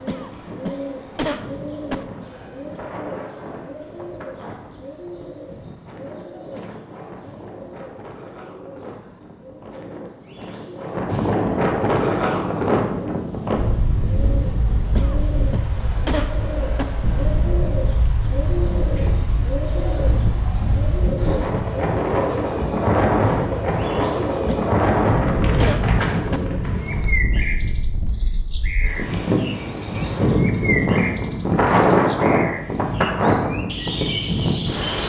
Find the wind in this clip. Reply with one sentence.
You can hear the wind from 0.1 to 35.0 s.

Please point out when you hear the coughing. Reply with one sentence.
The coughing can be heard from 0.1 to 2.0 s, from 14.9 to 16.9 s and from 24.4 to 26.4 s.